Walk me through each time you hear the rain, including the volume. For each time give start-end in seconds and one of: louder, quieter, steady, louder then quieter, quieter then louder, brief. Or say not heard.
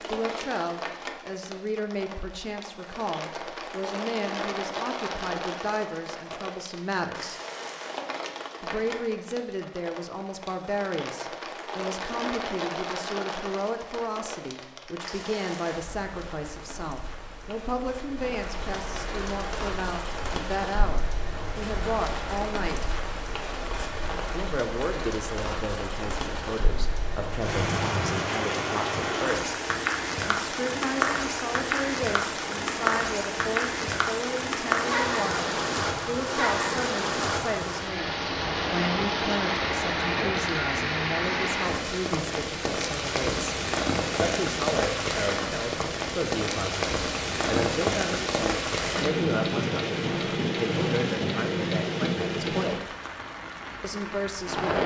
0.0-54.8 louder.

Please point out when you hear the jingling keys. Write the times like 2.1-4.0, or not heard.
not heard.